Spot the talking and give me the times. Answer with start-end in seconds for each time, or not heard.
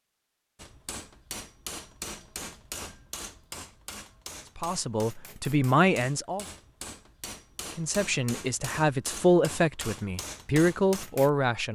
4.5-6.5, 7.8-11.7.